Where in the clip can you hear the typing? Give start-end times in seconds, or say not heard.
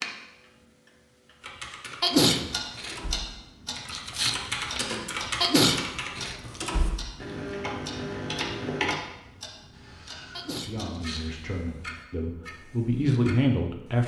1.4-8.9.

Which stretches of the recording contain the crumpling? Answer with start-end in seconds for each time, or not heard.
3.9-5.0, 10.8-11.6.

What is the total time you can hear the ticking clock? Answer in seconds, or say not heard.
14 s.